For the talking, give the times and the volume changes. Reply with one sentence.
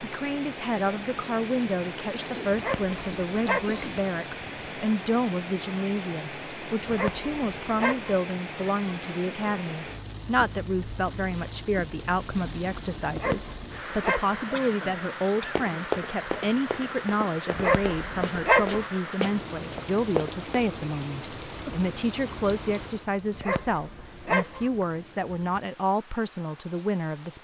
You can hear the talking from 0.0 to 27.3 s, at a steady volume.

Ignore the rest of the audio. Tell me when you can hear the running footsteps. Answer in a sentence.
You can hear the running footsteps from 15.4 to 20.4 s.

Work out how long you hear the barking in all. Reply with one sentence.
The barking can be heard for 7 seconds in total.